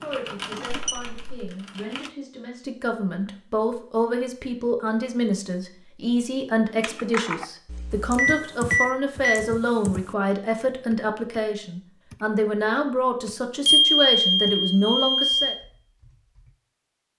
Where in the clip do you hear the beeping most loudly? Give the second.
14 s.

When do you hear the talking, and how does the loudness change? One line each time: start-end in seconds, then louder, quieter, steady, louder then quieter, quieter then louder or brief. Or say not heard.
0.0-15.6 louder.